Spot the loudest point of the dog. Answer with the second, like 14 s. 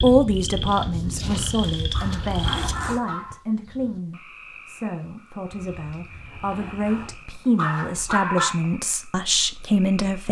8 s.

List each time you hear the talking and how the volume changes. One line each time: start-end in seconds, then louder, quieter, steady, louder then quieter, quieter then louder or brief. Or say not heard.
0.0-10.2 quieter then louder.